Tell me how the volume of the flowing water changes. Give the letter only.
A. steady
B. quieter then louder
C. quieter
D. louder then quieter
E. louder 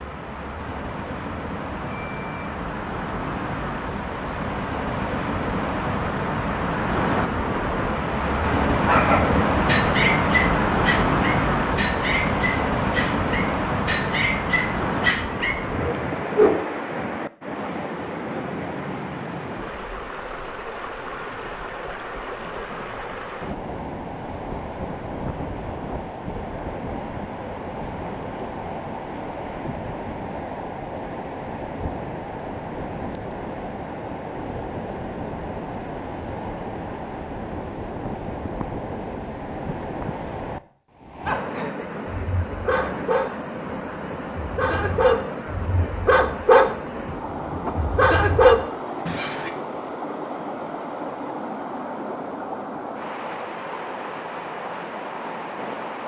C.